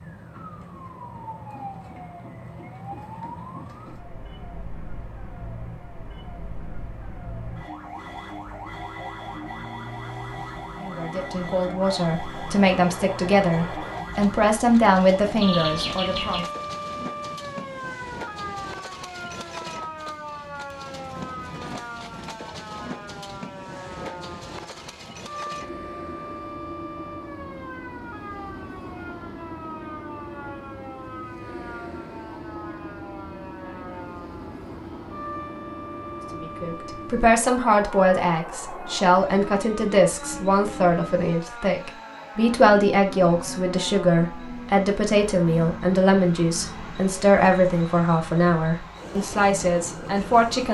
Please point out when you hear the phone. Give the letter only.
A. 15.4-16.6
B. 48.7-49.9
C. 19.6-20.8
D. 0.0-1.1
A.